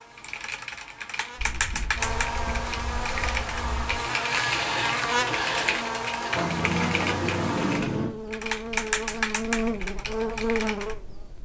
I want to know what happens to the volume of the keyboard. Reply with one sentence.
The loudness of the keyboard stays about the same.